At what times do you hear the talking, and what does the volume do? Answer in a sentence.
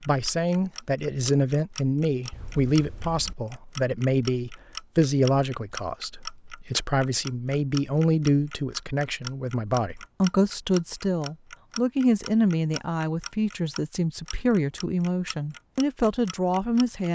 You can hear the talking from 0.1 to 17.1 s, at a steady volume.